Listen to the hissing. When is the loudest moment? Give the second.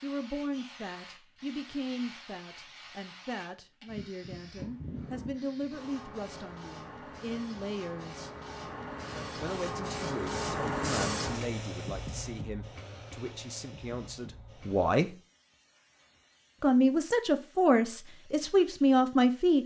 11 s.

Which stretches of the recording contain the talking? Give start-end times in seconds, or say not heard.
0.0-8.3, 9.3-15.1, 16.6-19.6.